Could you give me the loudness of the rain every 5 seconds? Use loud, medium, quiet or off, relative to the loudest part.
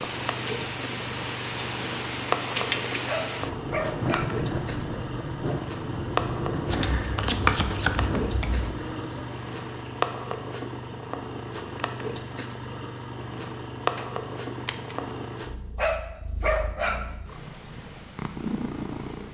loud, loud, off, off.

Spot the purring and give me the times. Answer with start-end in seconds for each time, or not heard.
0.0-19.3.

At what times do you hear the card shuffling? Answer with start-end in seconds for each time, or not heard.
2.5-3.0, 6.7-8.7, 13.9-15.1.